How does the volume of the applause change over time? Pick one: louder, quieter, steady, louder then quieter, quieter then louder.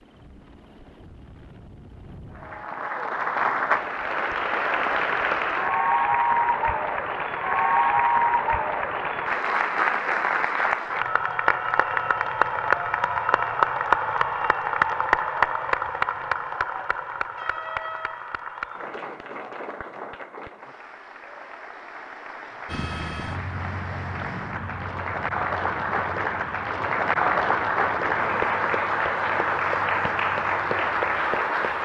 quieter then louder.